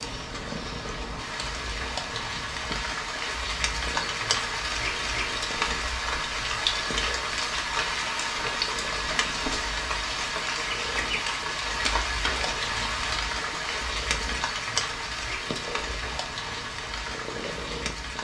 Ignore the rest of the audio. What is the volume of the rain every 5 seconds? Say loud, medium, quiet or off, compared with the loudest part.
loud, loud, loud, medium.